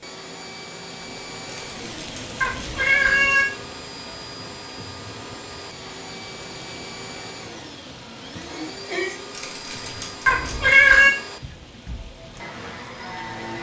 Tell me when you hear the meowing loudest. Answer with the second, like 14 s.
11 s.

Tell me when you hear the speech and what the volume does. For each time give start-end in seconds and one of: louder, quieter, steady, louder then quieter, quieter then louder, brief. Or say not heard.
not heard.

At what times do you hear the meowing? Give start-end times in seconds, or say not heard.
1.6-3.5, 9.3-11.1.